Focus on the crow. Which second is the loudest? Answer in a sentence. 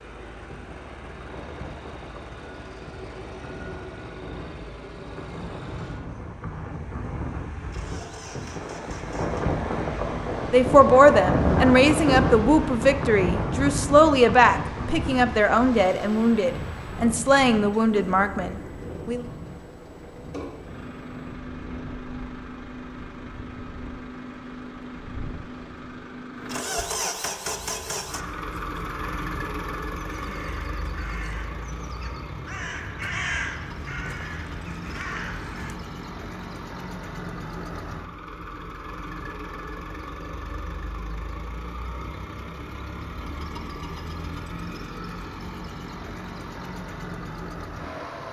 The loudest moment of the crow is at 33 seconds.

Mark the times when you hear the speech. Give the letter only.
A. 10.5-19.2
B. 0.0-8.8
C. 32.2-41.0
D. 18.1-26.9
A.